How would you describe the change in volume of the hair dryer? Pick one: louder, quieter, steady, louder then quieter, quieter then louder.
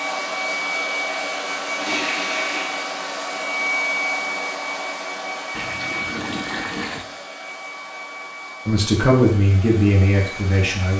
quieter.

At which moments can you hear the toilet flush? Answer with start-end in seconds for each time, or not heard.
1.8-2.7, 5.5-7.0.